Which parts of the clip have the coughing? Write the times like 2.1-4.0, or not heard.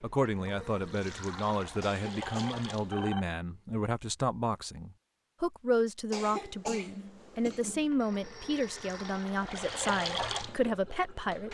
1.8-2.6, 6.1-7.9.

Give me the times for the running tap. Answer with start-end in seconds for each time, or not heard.
0.0-3.1, 7.3-11.5.